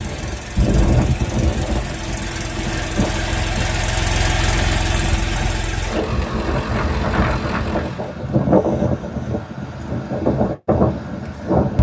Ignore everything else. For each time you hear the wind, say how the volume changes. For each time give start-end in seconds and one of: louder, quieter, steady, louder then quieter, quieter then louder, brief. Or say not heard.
0.0-11.7 quieter then louder.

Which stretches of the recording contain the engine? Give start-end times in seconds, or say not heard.
0.0-8.2.